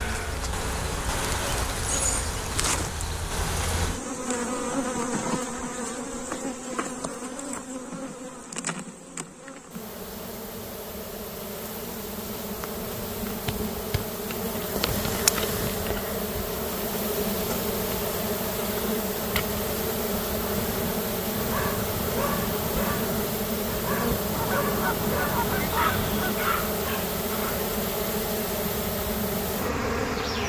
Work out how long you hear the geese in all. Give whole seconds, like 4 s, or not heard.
2 s.